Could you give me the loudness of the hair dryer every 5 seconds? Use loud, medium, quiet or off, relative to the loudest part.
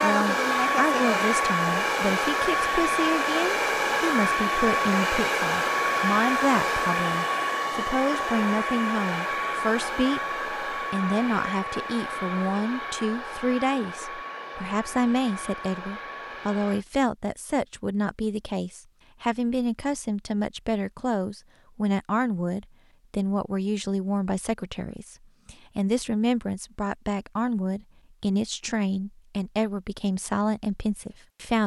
loud, loud, medium, quiet, off, off, off.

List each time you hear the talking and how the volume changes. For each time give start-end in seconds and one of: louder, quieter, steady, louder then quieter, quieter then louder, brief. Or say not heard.
0.0-31.6 steady.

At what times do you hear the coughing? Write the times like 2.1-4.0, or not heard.
not heard.